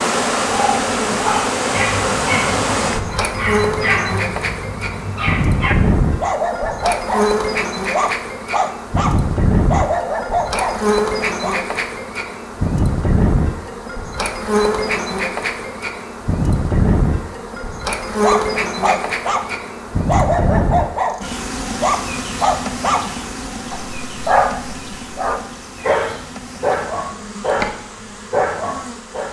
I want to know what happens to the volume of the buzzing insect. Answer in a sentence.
The volume of the buzzing insect goes down.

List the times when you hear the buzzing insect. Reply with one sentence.
You can hear the buzzing insect from 0.0 to 29.2 s.